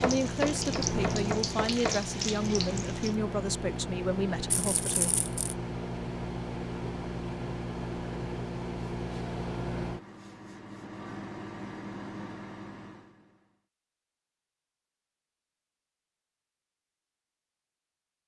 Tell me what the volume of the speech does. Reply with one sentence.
The loudness of the speech stays about the same.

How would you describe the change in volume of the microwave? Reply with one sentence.
The volume of the microwave goes down.